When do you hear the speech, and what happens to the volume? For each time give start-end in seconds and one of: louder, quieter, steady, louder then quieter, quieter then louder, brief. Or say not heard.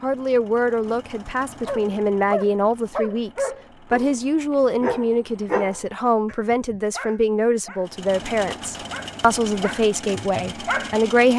0.0-11.3 steady.